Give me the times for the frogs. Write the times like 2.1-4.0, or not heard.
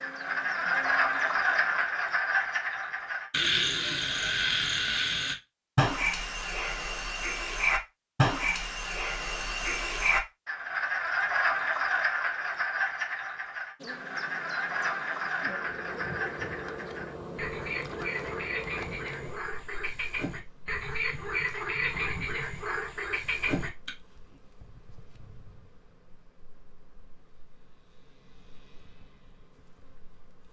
0.0-23.9.